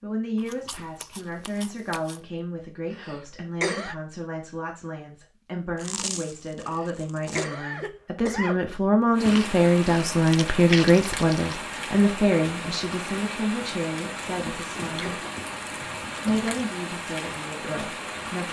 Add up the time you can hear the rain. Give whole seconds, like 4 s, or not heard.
9 s.